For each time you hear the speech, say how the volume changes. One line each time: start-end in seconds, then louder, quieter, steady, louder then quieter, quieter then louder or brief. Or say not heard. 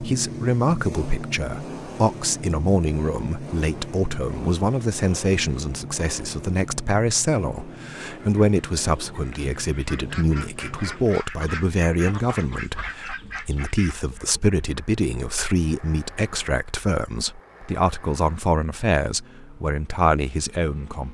0.0-21.1 steady.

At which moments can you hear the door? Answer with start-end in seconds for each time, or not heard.
not heard.